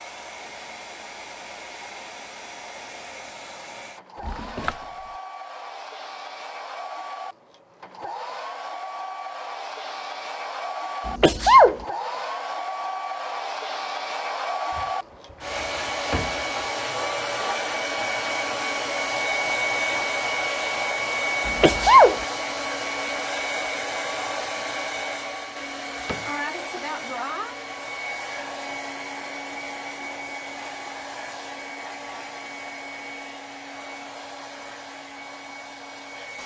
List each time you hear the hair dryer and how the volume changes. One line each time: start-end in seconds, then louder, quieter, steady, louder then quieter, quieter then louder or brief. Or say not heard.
0.0-36.4 louder then quieter.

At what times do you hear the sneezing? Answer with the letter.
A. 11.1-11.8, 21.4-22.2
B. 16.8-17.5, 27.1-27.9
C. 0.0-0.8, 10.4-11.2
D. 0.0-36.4
A.